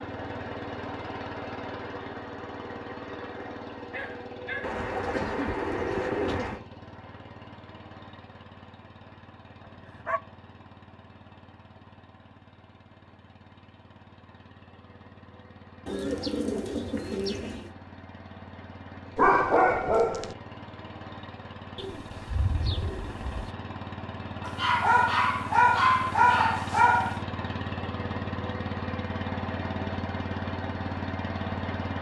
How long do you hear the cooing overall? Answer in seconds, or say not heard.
6 s.